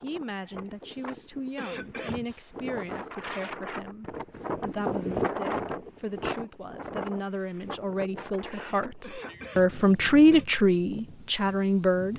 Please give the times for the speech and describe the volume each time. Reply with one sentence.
The speech can be heard from 0.0 to 12.1 s, getting louder.